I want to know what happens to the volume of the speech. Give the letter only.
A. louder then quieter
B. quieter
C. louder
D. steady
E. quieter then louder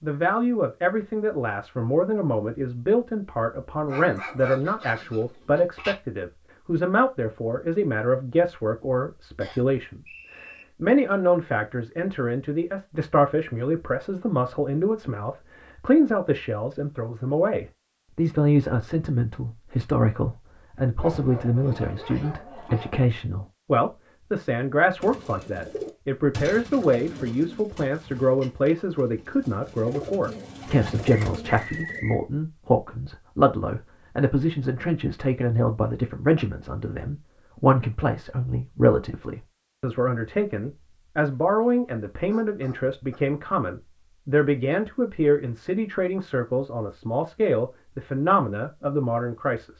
D.